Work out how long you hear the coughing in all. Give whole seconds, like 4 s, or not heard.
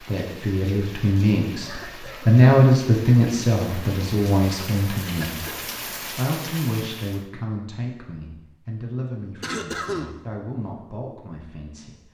2 s.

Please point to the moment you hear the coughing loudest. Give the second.
10 s.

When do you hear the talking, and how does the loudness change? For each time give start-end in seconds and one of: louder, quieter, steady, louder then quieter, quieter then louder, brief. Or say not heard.
0.0-12.0 quieter.